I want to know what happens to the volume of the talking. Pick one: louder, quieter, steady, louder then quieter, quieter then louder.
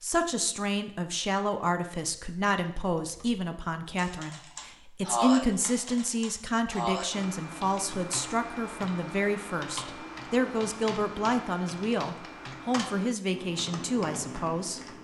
steady.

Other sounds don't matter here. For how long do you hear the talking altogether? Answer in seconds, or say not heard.
15 s.